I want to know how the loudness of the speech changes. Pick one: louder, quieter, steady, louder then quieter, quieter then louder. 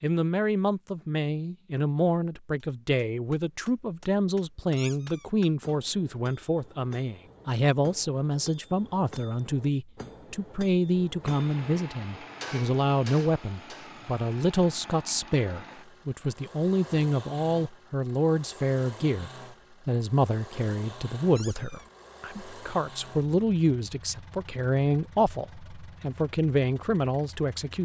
steady.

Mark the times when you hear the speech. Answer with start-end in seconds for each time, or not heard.
0.0-27.7.